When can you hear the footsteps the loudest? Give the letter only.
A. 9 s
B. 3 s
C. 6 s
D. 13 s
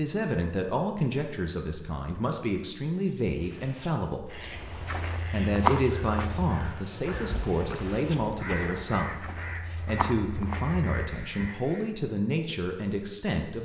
C.